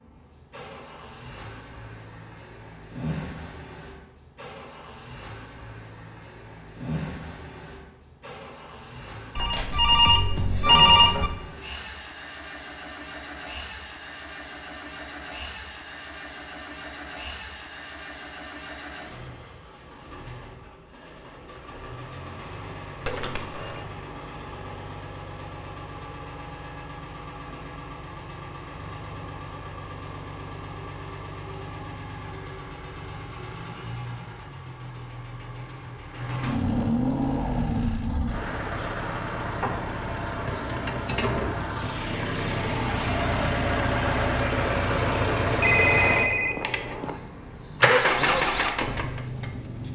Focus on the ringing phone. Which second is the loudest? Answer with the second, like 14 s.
11 s.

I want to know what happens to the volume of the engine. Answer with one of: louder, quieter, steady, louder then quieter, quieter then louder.
louder.